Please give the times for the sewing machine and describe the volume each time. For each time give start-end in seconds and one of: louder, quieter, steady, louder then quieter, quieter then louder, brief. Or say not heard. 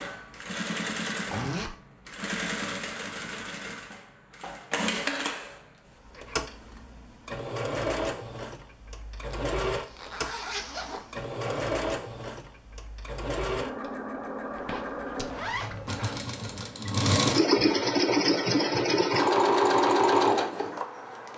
0.0-21.3 louder.